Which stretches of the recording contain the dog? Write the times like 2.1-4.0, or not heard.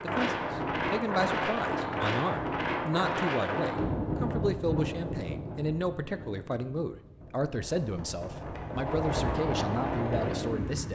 not heard.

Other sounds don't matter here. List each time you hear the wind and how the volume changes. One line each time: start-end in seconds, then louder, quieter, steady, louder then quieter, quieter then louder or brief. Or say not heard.
0.0-10.9 quieter then louder.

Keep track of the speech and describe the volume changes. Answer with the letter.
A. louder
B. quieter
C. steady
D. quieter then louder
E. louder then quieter
C.